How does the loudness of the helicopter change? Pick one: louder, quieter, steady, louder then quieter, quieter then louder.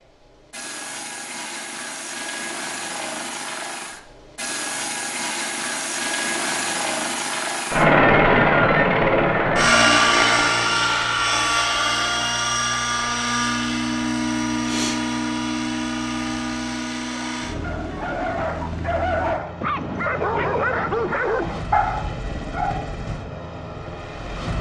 louder then quieter.